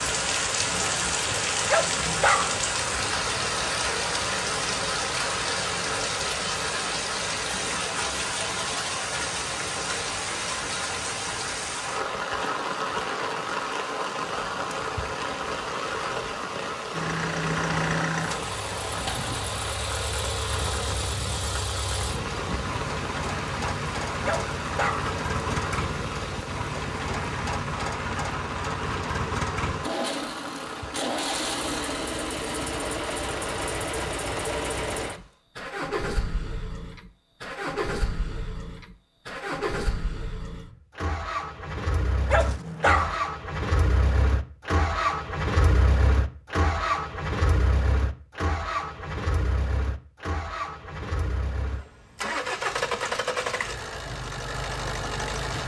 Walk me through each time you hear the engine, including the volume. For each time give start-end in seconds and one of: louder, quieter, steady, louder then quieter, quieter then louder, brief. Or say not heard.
16.9-55.6 steady.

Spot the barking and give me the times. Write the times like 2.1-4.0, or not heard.
1.6-2.5, 24.2-25.1, 42.3-43.1.